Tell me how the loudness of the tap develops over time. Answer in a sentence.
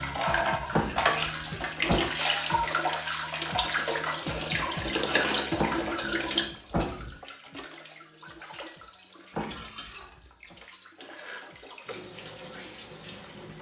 The loudness of the tap goes down.